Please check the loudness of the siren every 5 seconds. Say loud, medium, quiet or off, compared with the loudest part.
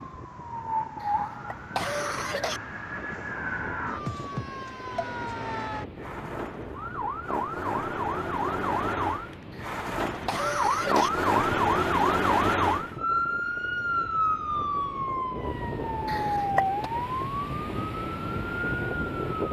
medium, medium, loud, medium.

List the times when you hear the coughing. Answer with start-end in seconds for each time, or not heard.
1.0-2.6, 9.5-11.1, 16.1-16.9.